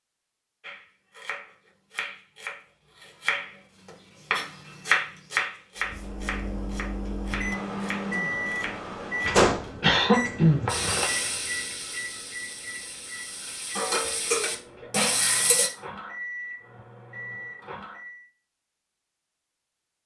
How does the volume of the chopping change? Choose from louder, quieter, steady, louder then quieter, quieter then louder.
louder then quieter.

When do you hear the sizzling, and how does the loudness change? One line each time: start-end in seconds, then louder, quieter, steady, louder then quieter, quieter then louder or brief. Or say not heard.
10.7-15.7 quieter then louder.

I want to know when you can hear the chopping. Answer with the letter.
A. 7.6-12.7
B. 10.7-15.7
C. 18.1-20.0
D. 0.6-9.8
D.